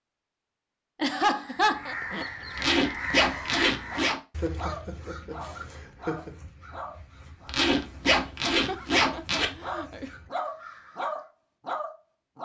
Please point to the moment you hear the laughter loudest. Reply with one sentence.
The loudest moment of the laughter is at 1 second.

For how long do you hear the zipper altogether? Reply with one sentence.
The zipper can be heard for 4 seconds in total.